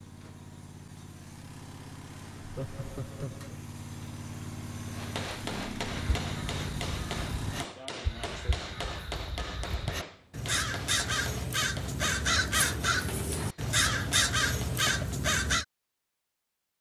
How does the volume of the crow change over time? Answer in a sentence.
The loudness of the crow goes up.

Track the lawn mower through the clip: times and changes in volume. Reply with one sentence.
You can hear the lawn mower from 0.0 to 7.7 s, getting louder.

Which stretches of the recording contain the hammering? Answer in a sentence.
The hammering can be heard from 4.8 to 15.1 s.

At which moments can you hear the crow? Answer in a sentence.
The crow can be heard from 5.9 to 15.7 s.